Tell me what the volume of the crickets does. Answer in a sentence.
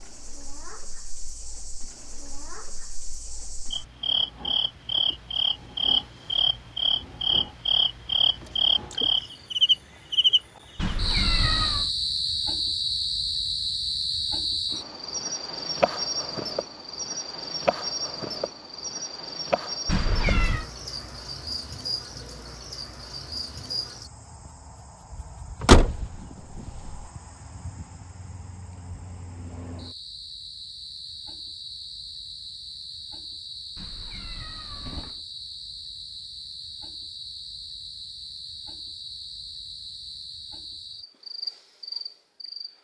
The loudness of the crickets goes down.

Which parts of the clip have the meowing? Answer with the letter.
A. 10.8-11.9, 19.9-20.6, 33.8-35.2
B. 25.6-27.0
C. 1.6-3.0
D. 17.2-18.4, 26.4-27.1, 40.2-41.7
A.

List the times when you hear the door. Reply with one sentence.
The door can be heard from 25.6 to 27.0 s.